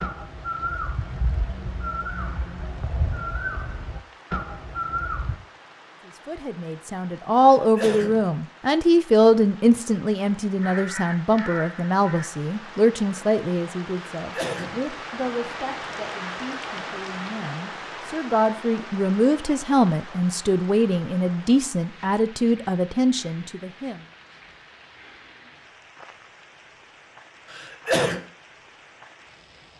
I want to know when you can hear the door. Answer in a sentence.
The door can't be heard in this clip.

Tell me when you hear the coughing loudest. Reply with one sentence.
The volume of the coughing peaks at 28 seconds.